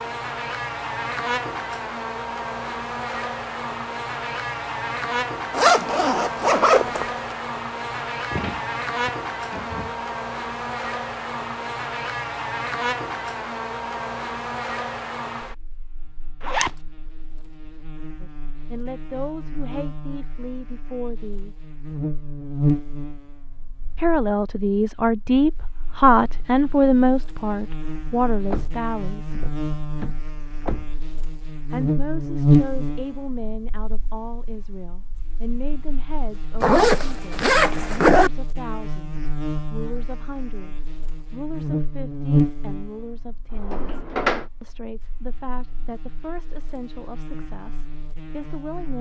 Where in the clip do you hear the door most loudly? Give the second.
44 s.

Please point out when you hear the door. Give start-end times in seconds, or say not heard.
8.3-10.1, 28.4-31.1, 43.5-44.5.